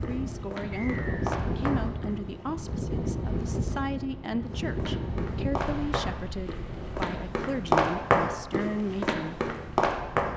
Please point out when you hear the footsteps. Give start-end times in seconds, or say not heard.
0.0-2.2, 4.7-10.3.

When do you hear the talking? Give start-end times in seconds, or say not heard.
0.0-9.4.